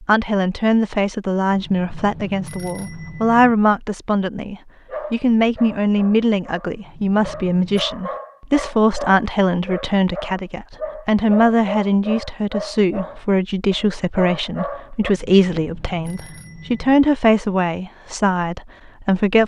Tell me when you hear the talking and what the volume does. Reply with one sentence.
You can hear the talking from 0.0 to 19.4 s, at a steady volume.